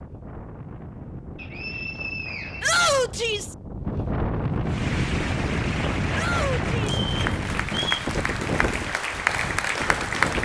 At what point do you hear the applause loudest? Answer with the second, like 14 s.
10 s.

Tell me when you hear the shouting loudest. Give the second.
3 s.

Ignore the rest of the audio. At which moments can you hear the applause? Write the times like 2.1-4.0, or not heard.
4.7-10.3.